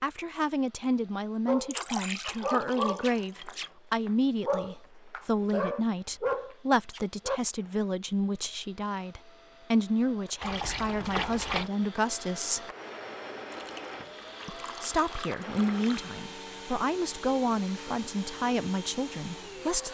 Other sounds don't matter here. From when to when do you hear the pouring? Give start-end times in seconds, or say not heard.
1.7-3.7, 10.4-11.7, 13.5-16.1.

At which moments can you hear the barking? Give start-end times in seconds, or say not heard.
1.4-7.4.